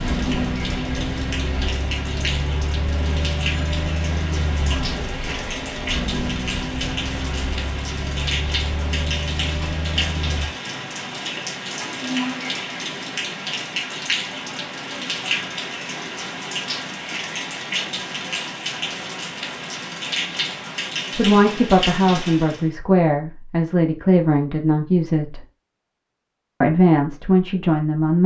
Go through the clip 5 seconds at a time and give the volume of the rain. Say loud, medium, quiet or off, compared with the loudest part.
loud, loud, loud, loud, loud, off.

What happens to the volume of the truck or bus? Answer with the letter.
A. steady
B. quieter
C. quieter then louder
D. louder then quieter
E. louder
A.